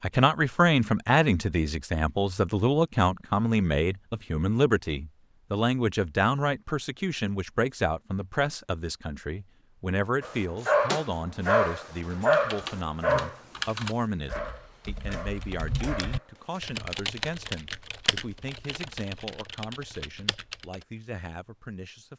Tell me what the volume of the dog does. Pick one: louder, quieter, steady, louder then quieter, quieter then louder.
quieter.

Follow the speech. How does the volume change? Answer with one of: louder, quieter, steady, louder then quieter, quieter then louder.
quieter.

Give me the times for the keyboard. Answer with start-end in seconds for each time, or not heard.
12.3-20.9.